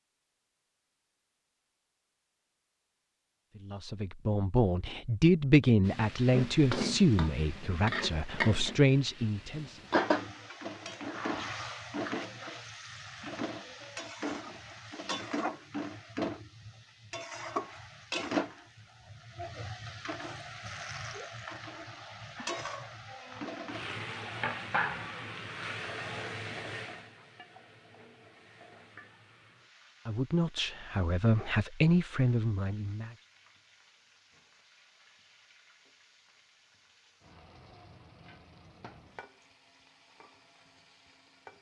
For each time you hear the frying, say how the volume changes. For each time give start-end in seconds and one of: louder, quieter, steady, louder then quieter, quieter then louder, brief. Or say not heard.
5.8-41.5 quieter.